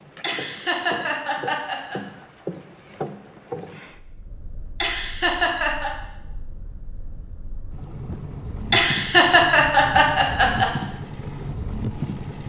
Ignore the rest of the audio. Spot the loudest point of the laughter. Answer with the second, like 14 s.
9 s.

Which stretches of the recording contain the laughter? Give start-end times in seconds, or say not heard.
0.2-2.0, 4.8-5.9, 8.7-10.7.